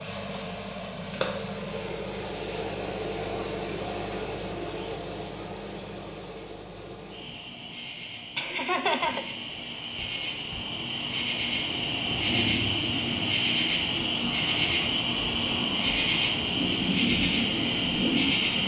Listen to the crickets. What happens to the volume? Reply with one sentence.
The volume of the crickets goes down, then up.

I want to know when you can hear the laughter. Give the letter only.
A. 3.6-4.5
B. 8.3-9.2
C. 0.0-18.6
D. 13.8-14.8
B.